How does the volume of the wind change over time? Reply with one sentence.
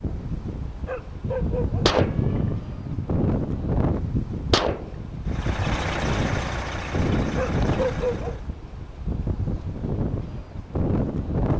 The loudness of the wind stays about the same.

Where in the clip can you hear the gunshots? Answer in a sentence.
You can hear the gunshots from 1.2 to 5.2 s.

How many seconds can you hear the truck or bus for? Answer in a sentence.
The truck or bus can be heard for 3 seconds in total.